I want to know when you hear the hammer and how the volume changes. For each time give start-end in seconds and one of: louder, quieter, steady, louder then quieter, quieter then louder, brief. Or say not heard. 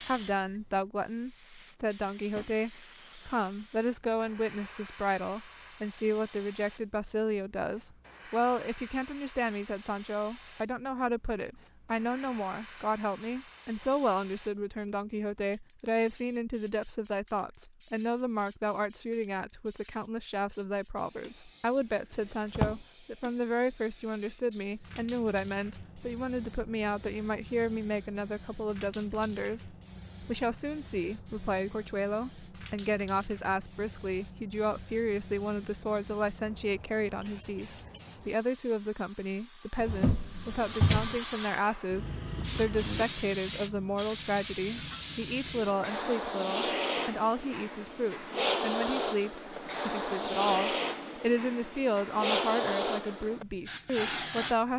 not heard.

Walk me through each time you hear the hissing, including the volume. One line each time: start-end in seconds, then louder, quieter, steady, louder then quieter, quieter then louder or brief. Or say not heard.
0.0-54.6 louder.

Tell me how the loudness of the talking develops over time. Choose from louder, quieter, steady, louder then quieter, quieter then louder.
steady.